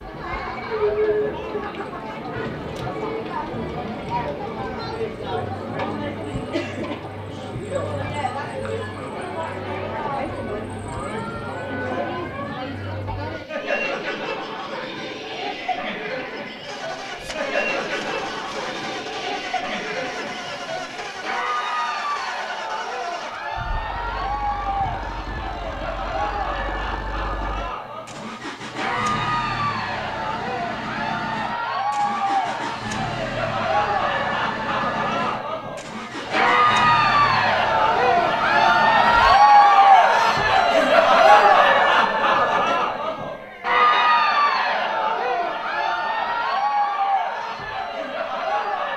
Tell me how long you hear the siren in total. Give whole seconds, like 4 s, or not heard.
not heard.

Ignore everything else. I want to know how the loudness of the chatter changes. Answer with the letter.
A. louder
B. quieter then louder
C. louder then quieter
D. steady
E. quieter
A.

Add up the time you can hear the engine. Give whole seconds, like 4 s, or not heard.
23 s.